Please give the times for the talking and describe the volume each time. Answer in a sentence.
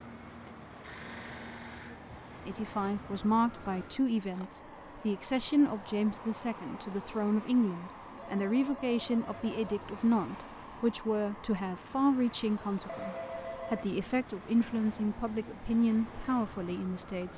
You can hear the talking from 2.5 to 17.3 s, at a steady volume.